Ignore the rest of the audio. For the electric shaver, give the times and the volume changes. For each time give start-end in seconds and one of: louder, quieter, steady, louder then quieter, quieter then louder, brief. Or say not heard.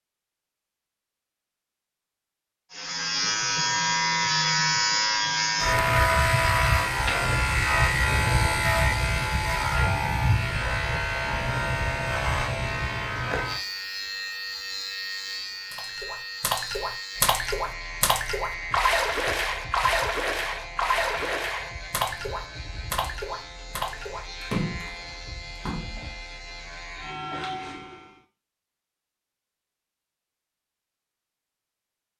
2.7-28.2 quieter.